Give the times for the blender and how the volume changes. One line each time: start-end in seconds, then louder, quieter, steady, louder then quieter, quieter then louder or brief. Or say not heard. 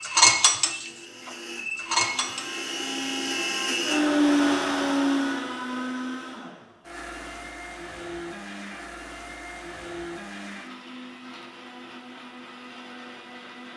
0.0-13.7 louder then quieter.